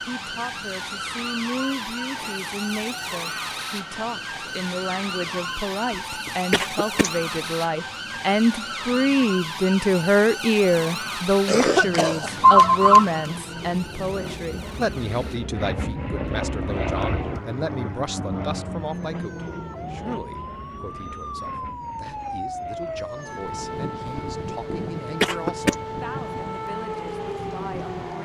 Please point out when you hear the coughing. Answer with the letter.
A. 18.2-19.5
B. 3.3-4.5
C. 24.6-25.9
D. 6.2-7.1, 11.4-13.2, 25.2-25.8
D.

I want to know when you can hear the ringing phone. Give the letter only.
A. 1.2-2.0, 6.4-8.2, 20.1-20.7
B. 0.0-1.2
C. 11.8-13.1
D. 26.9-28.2
C.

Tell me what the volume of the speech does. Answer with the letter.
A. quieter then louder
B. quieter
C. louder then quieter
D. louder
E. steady
C.